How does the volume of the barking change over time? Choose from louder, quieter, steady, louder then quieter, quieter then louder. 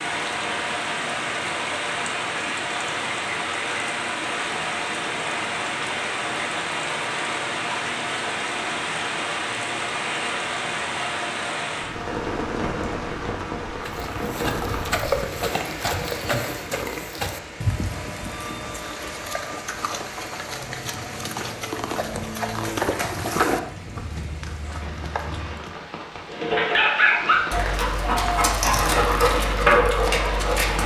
quieter then louder.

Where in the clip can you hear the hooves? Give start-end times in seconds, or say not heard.
13.8-25.8.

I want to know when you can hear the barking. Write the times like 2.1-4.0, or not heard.
26.3-30.8.